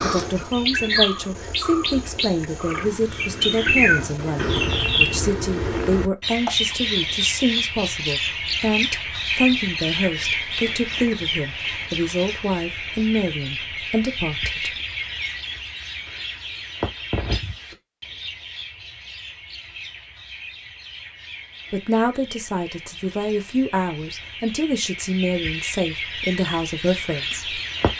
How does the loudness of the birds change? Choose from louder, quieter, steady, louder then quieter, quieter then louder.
quieter.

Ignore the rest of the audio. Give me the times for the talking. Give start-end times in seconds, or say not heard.
0.0-14.7, 21.7-27.6.